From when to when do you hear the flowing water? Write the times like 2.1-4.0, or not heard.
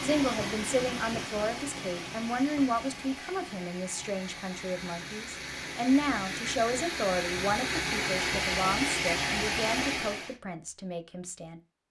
0.0-10.3.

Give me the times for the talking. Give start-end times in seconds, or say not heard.
0.0-11.6.